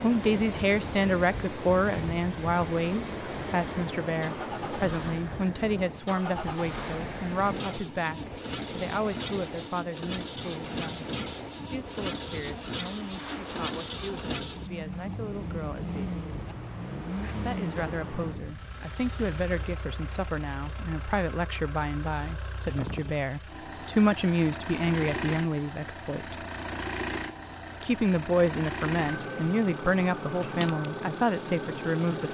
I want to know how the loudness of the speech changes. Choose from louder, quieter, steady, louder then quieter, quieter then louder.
quieter then louder.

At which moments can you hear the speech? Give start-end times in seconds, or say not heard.
0.0-16.2, 17.4-26.4, 27.8-32.2.